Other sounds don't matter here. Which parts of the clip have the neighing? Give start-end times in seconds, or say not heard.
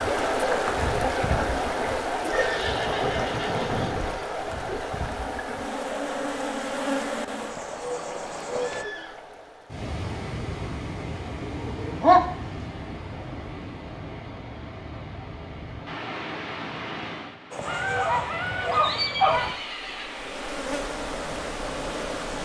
2.3-4.2, 8.6-9.2, 18.9-20.2.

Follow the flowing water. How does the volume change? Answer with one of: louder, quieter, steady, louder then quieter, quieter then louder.
quieter.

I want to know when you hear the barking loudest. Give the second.
12 s.